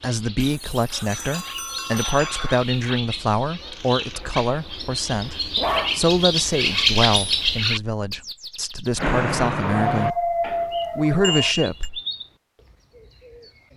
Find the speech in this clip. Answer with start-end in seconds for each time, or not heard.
0.0-10.2, 10.9-12.0.